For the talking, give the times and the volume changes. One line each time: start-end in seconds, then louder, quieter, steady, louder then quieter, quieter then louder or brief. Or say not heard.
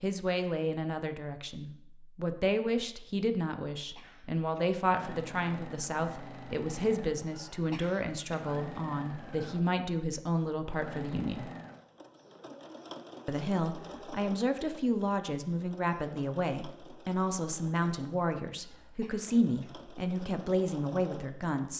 0.0-11.5 steady
13.2-21.7 steady.